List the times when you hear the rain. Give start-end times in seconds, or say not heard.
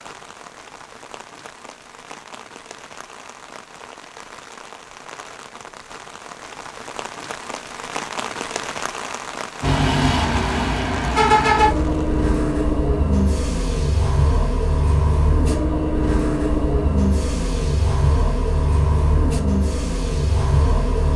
0.0-12.2.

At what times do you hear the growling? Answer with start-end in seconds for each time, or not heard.
not heard.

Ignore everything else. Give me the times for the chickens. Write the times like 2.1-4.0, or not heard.
not heard.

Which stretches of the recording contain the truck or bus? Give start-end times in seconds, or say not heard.
9.6-21.1.